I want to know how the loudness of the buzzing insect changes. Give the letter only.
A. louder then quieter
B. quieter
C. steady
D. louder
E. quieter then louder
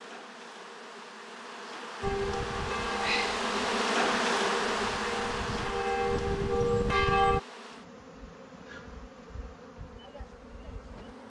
A.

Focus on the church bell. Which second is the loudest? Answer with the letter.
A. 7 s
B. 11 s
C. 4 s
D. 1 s
A.